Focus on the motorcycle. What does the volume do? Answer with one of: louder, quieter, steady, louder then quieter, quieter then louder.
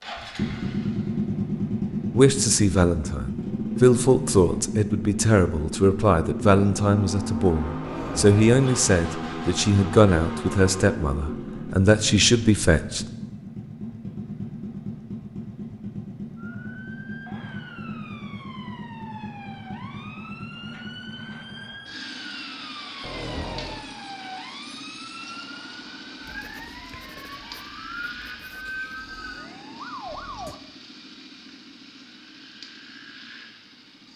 quieter.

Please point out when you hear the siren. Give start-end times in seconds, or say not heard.
16.4-30.6.